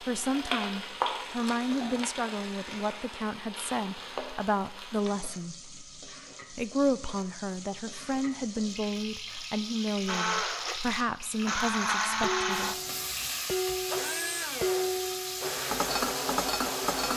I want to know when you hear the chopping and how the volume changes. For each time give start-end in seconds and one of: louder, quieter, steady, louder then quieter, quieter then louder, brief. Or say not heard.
not heard.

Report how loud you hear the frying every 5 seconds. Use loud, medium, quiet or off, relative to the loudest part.
loud, medium, loud, loud.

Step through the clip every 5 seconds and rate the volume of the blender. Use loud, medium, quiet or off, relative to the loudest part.
off, off, loud, loud.